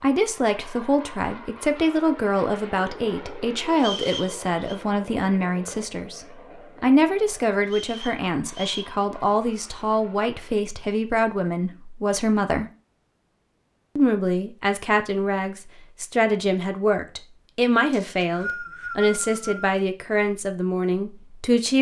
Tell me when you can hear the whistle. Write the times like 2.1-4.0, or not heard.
3.8-4.8, 7.7-8.9, 17.9-19.6.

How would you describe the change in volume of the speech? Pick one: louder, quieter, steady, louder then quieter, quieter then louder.
steady.